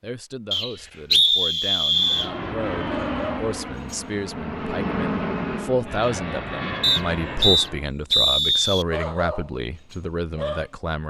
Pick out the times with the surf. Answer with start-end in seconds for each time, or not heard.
not heard.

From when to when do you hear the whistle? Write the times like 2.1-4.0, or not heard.
0.5-2.3, 6.8-8.8.